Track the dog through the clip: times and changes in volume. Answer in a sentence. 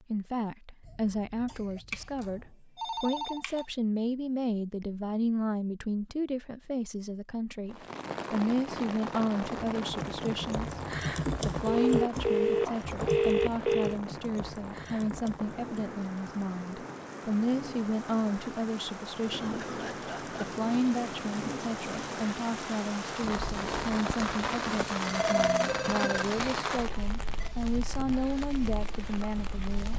The dog can't be heard in this clip.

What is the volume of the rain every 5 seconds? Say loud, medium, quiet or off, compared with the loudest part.
off, loud, medium, medium, loud, loud.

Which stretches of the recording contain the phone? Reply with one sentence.
You can hear the phone from 1.9 to 3.6 s, from 11.7 to 14.0 s and from 25.0 to 27.5 s.